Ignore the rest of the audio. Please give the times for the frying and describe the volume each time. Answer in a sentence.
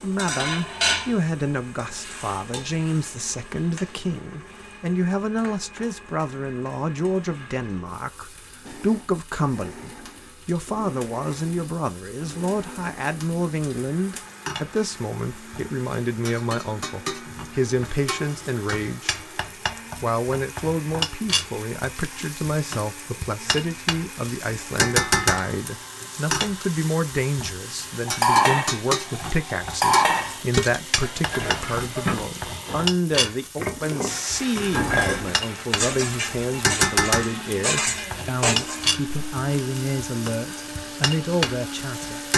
The frying can be heard from 0.0 to 42.3 s, getting quieter then louder.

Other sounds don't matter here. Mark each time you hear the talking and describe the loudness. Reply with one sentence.
The talking can be heard from 0.0 to 19.2 s, at a steady volume; and from 20.0 to 42.2 s, at a steady volume.